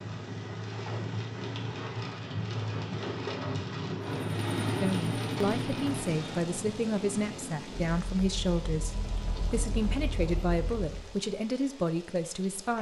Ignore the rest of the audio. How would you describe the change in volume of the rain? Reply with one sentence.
The loudness of the rain goes down.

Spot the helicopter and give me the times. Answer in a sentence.
The helicopter can be heard from 4.0 to 11.2 s.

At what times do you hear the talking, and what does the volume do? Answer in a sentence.
The talking can be heard from 4.8 to 12.7 s, at a steady volume.